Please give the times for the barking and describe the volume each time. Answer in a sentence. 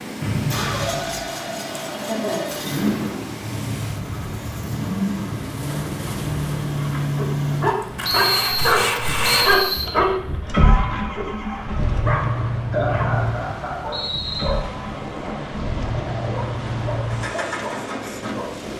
The barking can be heard from 6.8 to 18.5 s, getting quieter.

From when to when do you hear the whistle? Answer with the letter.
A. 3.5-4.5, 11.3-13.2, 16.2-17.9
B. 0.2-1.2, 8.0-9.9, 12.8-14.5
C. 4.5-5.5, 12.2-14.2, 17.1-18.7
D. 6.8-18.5
B.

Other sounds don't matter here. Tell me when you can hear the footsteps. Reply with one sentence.
You can't hear the footsteps here.